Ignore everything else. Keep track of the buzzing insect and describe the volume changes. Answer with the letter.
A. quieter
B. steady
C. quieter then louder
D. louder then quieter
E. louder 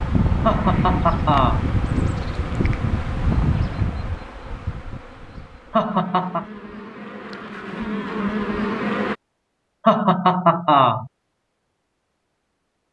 C.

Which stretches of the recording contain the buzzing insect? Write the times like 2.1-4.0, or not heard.
0.0-9.2.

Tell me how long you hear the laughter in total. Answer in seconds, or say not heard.
3 s.